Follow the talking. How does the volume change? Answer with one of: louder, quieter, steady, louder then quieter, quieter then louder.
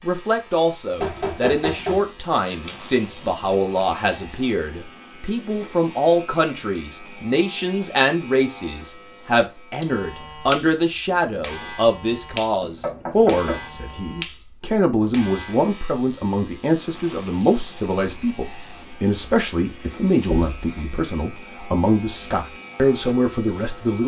steady.